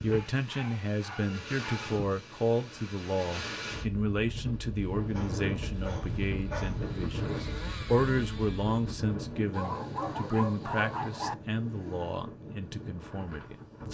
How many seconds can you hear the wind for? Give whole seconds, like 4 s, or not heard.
14 s.